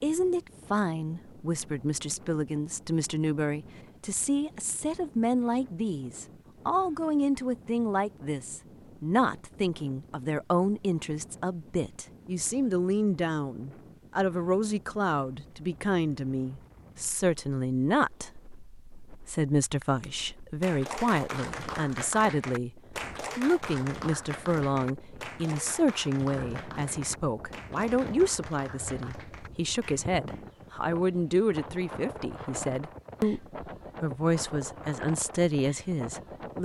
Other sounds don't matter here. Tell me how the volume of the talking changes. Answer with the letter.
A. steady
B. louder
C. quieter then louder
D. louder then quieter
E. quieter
A.